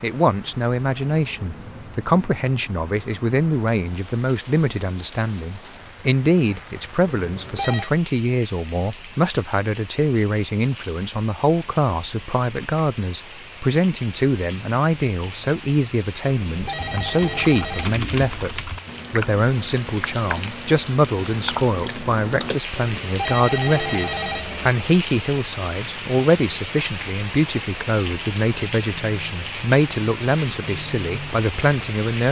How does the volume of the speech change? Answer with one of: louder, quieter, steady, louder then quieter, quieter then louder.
steady.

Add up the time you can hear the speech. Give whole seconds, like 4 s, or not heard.
32 s.